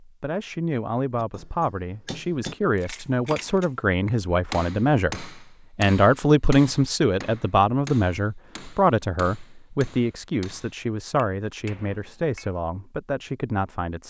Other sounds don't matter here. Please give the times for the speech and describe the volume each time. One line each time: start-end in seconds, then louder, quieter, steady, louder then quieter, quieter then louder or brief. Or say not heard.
0.0-14.0 louder then quieter.